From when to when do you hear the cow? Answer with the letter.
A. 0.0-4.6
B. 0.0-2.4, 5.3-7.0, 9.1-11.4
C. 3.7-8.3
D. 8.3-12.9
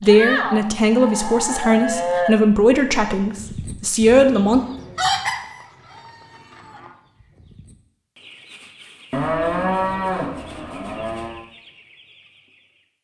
B.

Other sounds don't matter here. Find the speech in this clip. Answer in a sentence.
The speech can be heard from 0.0 to 4.6 s.